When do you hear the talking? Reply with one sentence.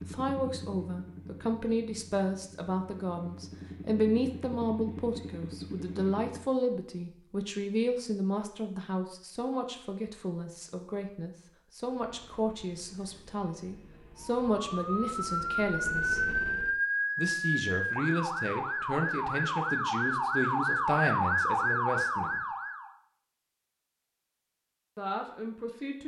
The talking can be heard from 0.1 to 16.2 s, from 17.1 to 22.4 s and from 24.9 to 26.0 s.